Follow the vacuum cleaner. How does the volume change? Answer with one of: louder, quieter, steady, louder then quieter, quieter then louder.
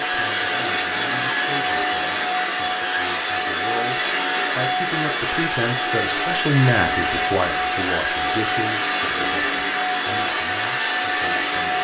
steady.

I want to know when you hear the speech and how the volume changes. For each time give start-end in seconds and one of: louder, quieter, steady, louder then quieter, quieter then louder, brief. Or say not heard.
0.0-11.7 louder then quieter.